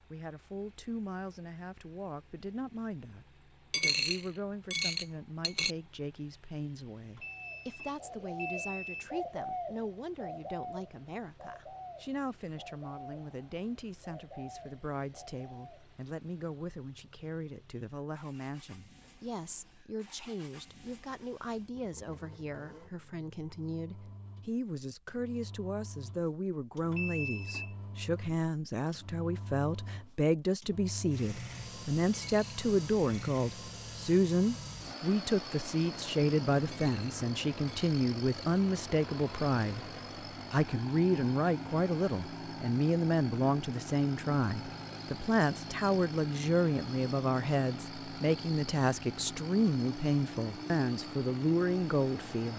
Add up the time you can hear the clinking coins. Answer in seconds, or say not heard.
5 s.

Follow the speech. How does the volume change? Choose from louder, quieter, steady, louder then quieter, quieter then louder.
louder.